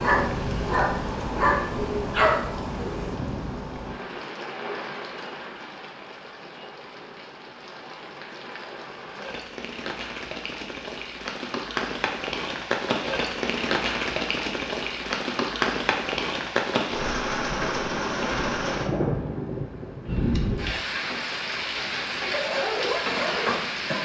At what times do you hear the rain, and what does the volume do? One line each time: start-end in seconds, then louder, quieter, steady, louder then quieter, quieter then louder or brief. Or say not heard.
0.0-24.0 quieter then louder.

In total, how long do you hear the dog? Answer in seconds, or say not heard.
5 s.